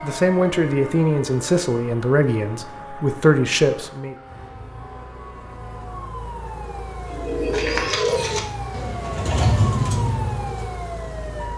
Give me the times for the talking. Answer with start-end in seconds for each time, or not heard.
0.0-4.2.